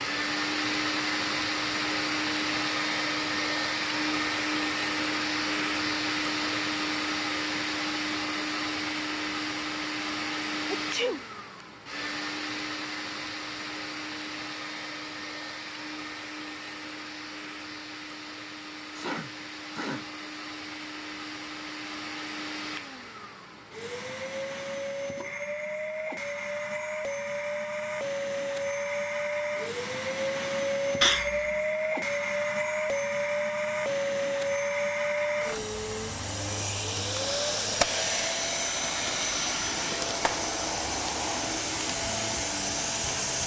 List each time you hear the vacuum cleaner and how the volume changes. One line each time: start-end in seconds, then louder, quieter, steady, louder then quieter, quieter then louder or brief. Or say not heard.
0.0-43.4 quieter then louder.